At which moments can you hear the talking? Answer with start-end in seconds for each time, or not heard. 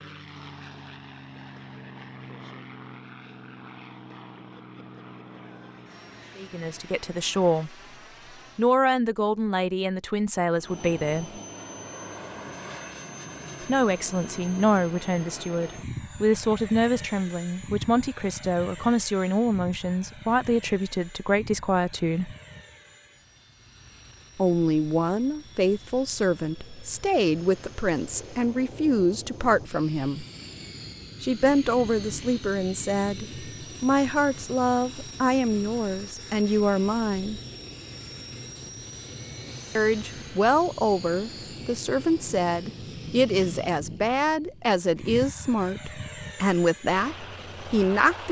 6.3-7.8, 8.6-11.4, 13.6-22.3, 24.4-30.2, 31.2-37.4, 39.8-48.2.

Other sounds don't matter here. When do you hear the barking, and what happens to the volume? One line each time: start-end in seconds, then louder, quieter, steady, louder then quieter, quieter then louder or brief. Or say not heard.
not heard.